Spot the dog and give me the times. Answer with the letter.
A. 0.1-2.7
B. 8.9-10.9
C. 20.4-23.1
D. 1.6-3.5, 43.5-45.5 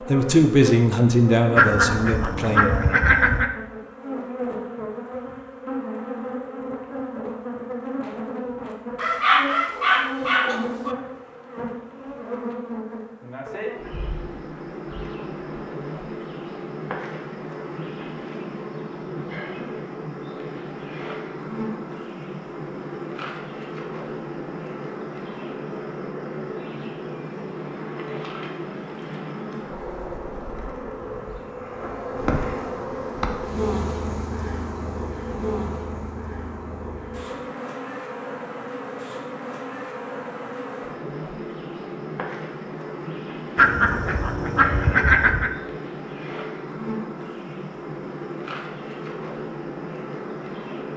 B.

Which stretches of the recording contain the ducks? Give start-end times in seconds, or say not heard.
1.6-3.5, 43.5-45.5.